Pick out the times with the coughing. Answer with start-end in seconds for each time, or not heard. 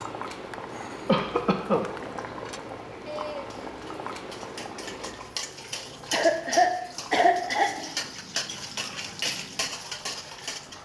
1.1-1.9, 6.1-7.7.